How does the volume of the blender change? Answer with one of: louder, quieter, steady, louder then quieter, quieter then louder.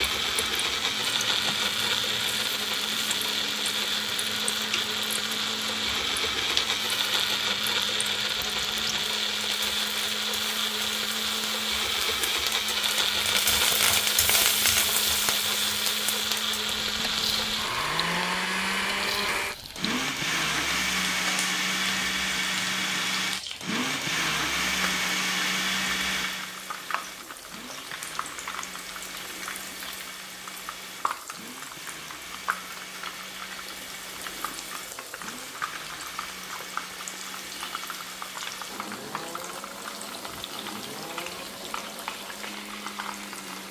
quieter.